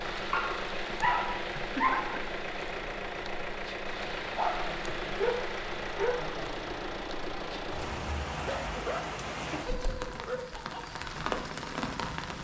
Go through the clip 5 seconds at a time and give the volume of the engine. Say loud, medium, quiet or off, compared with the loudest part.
loud, loud, off.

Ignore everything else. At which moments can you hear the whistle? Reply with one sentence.
You can't hear the whistle here.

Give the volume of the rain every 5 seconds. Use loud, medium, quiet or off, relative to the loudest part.
medium, loud, loud.